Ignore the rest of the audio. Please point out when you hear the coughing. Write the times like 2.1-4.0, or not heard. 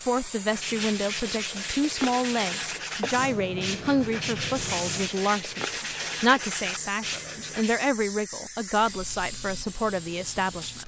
not heard.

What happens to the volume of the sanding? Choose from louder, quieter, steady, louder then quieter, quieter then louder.
steady.